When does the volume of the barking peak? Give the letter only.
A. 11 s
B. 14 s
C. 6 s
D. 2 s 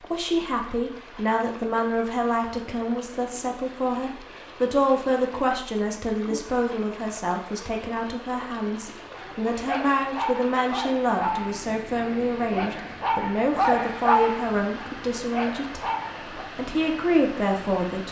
B.